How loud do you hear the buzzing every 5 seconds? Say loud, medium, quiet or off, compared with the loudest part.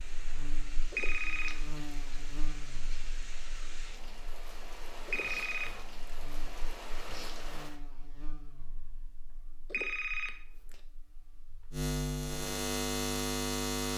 quiet, quiet, loud.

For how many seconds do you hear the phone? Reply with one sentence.
You can hear the phone for 3 seconds altogether.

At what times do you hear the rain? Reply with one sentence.
You can hear the rain from 0.0 to 7.8 s.